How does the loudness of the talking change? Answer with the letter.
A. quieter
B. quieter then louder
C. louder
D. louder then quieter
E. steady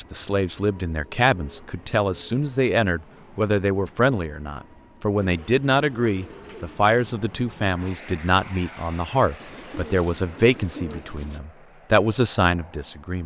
E.